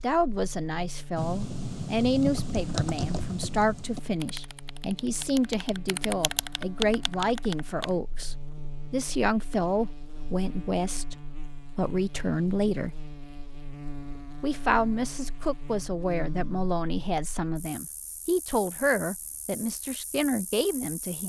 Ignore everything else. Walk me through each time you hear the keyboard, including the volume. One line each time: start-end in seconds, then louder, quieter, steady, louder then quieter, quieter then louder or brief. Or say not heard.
1.1-7.9 quieter then louder.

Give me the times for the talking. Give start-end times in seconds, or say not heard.
0.0-12.9, 14.4-21.2.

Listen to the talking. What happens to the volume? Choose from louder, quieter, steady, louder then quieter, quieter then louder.
steady.